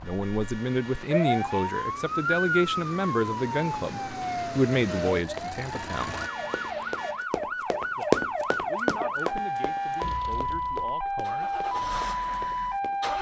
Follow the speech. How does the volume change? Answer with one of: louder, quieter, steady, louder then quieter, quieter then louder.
quieter.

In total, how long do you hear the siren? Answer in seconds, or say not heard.
13 s.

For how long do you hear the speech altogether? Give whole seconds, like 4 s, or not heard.
10 s.